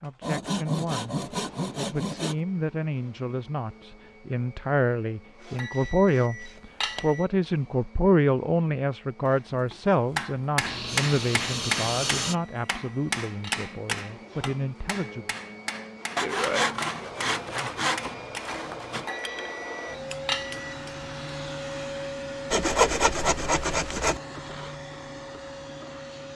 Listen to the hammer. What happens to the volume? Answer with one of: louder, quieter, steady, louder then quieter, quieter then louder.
quieter.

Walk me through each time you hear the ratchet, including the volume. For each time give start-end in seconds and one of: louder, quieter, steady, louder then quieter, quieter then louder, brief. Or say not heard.
not heard.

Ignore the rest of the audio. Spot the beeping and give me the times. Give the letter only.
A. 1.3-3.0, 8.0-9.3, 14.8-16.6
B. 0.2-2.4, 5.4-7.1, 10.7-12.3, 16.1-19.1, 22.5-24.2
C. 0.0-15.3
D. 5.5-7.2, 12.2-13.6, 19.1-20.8
D.